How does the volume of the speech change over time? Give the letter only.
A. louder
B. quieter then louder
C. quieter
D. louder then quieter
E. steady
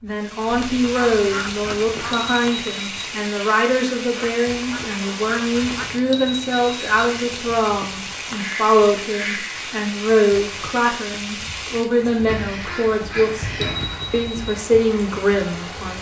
E.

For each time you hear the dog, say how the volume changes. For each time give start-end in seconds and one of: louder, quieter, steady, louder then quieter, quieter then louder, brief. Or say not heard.
not heard.